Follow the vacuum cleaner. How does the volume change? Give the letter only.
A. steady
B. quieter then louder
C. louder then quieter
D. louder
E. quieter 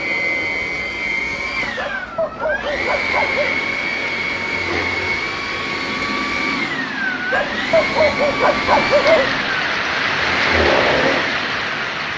A.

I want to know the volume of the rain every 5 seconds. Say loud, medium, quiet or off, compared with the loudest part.
medium, medium, loud.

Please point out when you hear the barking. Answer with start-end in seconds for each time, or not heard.
1.8-3.5, 7.3-9.4.